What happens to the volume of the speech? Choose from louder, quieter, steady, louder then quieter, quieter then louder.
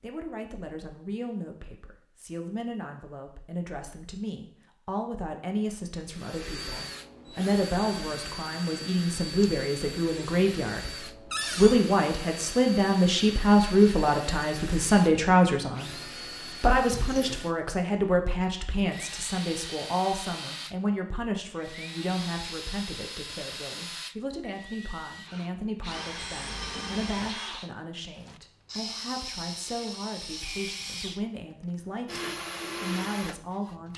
louder then quieter.